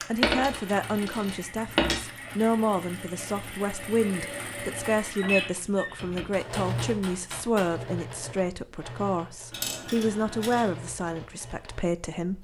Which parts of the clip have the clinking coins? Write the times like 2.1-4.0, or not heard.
0.2-2.0, 9.5-10.7.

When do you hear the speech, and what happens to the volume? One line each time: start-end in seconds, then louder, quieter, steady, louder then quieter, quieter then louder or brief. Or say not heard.
0.1-12.3 steady.